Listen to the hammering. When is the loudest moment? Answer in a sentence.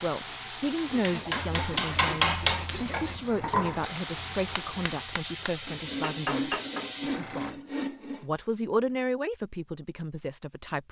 The volume of the hammering peaks at 2 seconds.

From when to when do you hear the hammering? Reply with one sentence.
You can hear the hammering from 0.8 to 6.8 s.